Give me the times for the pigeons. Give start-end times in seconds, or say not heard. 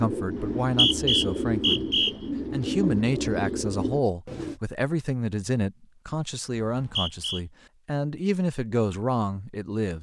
0.0-4.5.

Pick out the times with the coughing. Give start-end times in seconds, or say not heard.
not heard.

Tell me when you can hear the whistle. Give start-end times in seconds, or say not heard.
0.3-2.1, 6.7-7.4.